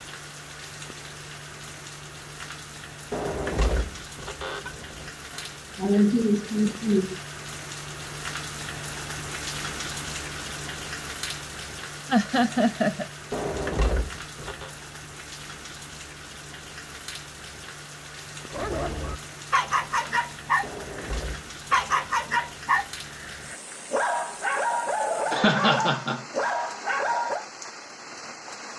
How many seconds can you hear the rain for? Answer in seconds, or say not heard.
29 s.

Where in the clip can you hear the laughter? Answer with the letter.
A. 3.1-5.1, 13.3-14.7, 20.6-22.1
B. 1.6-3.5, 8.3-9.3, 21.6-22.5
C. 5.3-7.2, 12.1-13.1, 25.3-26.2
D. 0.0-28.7
C.